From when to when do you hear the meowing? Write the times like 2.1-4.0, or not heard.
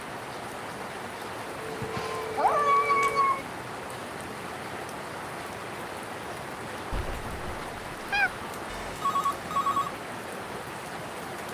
1.9-3.5, 6.9-8.3.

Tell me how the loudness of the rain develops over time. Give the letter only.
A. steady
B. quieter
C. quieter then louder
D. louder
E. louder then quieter
A.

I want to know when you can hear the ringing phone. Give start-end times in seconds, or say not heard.
1.6-3.3, 8.7-9.9.